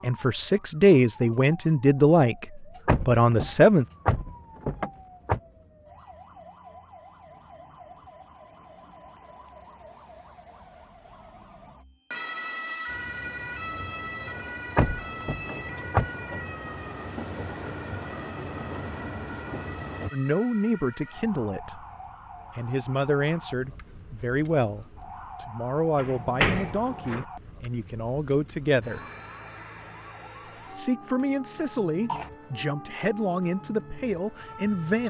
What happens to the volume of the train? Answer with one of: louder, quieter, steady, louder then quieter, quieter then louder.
louder.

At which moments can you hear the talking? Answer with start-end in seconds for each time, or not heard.
0.0-3.9, 20.1-21.9, 22.6-29.0, 30.8-35.0.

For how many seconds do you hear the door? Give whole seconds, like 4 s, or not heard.
5 s.